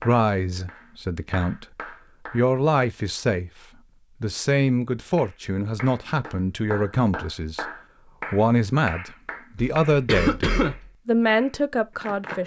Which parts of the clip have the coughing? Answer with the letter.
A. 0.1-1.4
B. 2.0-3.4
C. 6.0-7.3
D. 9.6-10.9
D.